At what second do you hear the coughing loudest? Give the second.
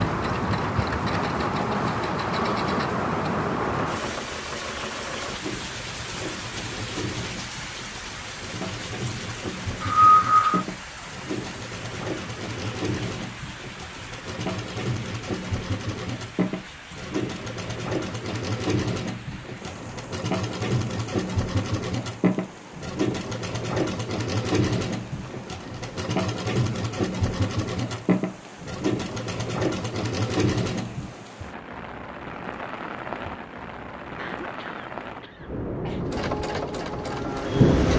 10 s.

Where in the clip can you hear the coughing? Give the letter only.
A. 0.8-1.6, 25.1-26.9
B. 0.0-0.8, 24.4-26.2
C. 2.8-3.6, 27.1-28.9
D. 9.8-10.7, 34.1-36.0
D.